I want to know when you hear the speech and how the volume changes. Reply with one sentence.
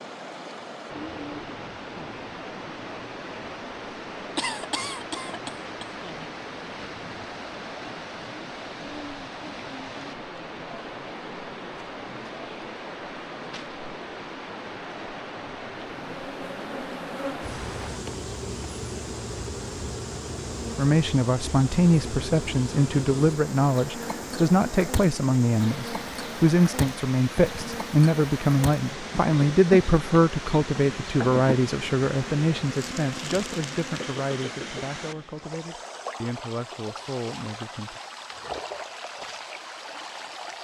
The speech can be heard from 20.8 to 38.0 s, getting quieter.